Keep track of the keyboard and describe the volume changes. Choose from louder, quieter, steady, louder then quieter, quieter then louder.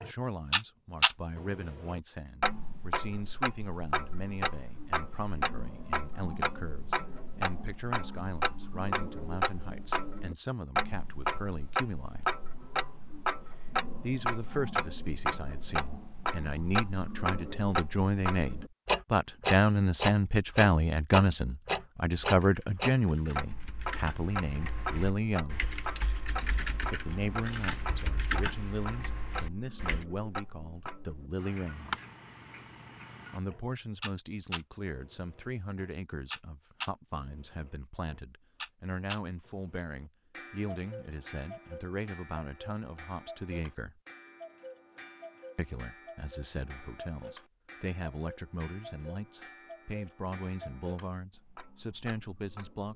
louder.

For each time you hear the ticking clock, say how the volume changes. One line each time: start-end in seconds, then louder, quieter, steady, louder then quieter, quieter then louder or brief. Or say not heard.
0.0-52.9 quieter.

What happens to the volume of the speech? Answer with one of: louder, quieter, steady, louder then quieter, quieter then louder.
louder then quieter.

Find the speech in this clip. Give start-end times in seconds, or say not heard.
0.0-12.3, 14.0-25.6, 26.9-32.0, 33.3-44.0, 45.5-52.9.